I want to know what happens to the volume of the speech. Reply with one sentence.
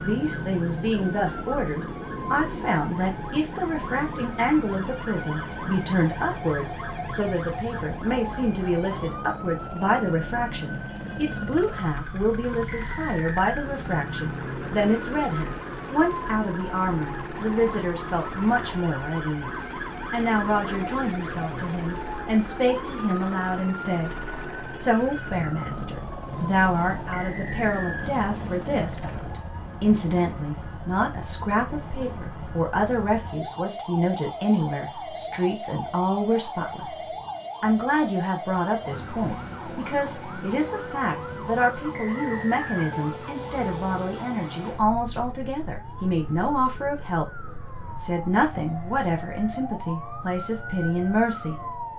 The volume of the speech stays about the same.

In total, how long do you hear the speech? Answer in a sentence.
You can hear the speech for 52 seconds altogether.